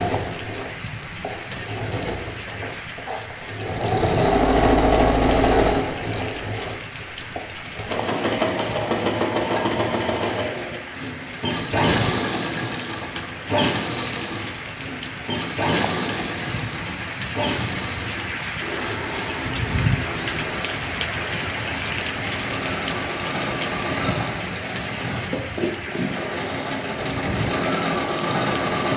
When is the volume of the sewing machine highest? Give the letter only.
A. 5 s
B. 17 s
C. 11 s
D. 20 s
A.